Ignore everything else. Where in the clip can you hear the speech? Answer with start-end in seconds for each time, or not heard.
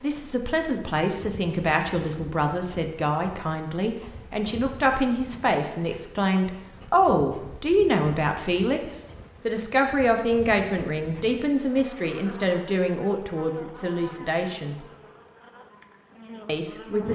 0.0-14.8, 16.4-17.1.